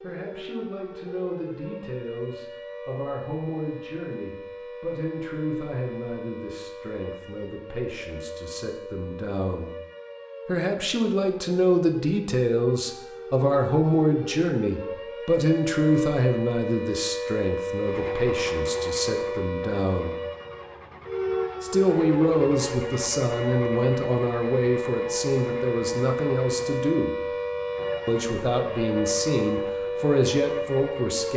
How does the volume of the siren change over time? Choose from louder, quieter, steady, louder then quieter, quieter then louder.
louder.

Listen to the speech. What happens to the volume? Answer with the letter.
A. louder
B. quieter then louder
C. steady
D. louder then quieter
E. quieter
A.